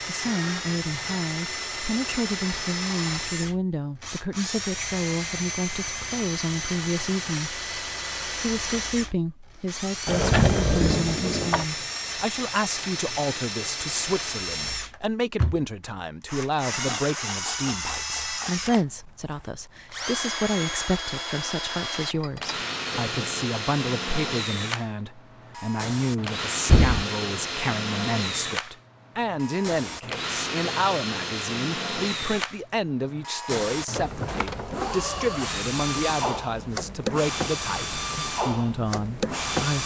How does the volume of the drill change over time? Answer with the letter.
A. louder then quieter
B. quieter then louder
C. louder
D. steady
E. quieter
D.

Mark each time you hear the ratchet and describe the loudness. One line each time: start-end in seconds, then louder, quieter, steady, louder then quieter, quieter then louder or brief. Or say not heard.
not heard.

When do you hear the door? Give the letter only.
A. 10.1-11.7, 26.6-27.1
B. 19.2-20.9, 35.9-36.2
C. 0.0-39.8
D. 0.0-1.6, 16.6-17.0
A.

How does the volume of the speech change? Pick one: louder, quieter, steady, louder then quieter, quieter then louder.
steady.